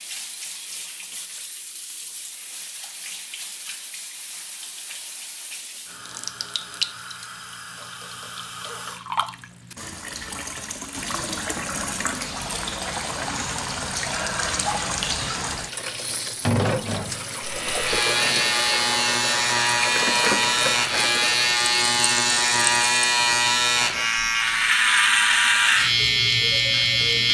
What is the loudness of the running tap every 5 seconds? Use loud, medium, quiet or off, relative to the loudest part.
medium, medium, loud, loud, loud, off.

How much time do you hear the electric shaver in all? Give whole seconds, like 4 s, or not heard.
10 s.